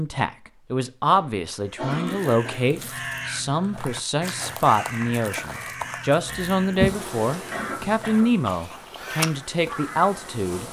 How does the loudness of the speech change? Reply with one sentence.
The loudness of the speech stays about the same.